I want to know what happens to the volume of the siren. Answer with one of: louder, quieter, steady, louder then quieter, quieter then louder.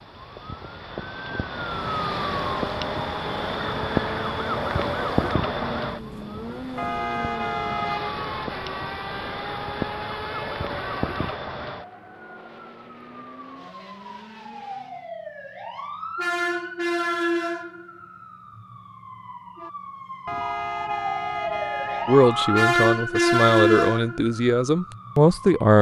quieter then louder.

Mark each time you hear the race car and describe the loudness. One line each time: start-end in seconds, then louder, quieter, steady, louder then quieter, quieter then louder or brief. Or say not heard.
1.7-15.1 quieter.